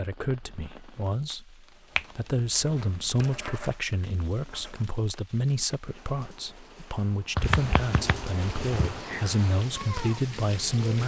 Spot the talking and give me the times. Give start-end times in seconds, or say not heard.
0.0-11.0.